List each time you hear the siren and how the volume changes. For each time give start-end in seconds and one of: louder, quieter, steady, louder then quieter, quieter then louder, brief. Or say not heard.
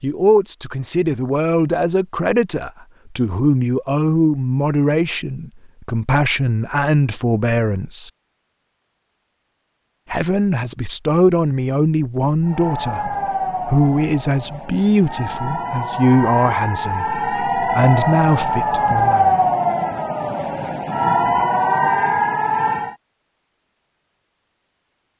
12.4-22.9 louder.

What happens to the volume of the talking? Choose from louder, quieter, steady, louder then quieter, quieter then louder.
steady.